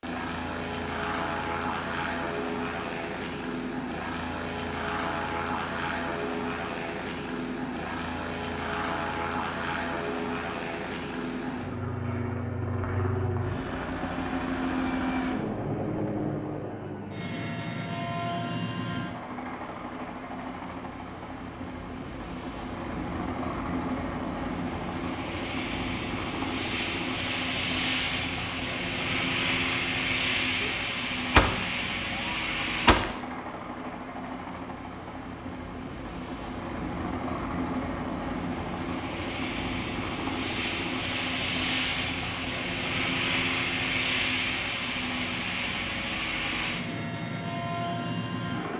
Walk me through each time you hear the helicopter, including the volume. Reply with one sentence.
The helicopter can be heard from 0.0 to 48.7 s, at a steady volume.